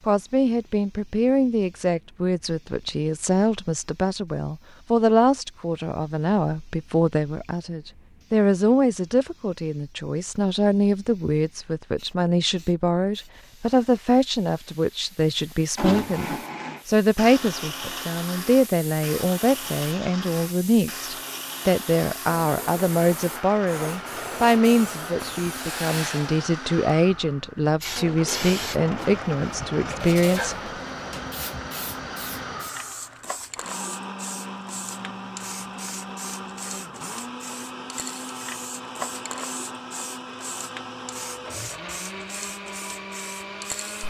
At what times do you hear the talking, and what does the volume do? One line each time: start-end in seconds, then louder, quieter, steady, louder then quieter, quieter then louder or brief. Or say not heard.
0.1-30.6 steady.